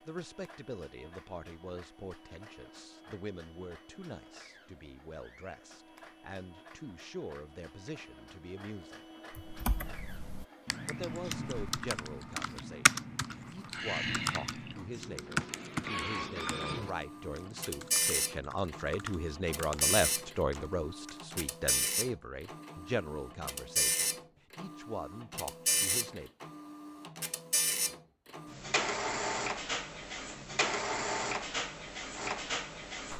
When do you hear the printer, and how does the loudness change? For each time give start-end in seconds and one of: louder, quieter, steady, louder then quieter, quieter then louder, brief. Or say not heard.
0.0-33.1 louder.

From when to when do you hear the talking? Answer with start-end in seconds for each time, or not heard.
0.1-9.0, 10.8-26.3.